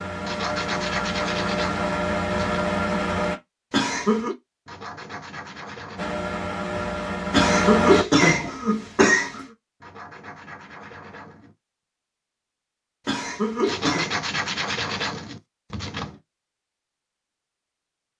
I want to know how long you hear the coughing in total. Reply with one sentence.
You can hear the coughing for 4 seconds altogether.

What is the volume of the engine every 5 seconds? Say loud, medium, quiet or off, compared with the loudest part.
loud, loud, off, off.